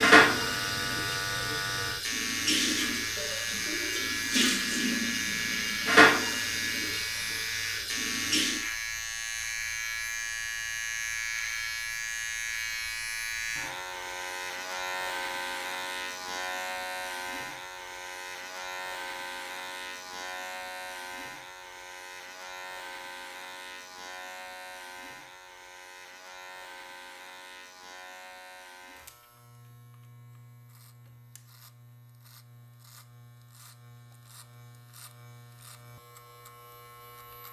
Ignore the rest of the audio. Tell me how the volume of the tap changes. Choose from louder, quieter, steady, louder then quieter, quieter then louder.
louder then quieter.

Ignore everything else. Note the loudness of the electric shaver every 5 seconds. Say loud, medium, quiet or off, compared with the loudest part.
loud, loud, loud, loud, medium, quiet, quiet, quiet.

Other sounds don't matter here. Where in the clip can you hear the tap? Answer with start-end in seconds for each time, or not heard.
0.0-8.7.